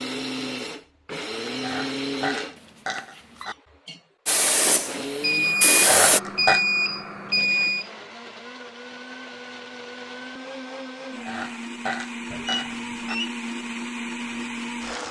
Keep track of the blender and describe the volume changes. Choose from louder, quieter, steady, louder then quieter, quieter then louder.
quieter then louder.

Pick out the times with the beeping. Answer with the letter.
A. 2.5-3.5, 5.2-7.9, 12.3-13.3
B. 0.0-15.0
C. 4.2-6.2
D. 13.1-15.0
A.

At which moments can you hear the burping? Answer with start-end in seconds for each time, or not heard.
1.5-3.5, 5.8-6.7, 11.2-13.2.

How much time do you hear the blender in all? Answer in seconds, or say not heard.
15 s.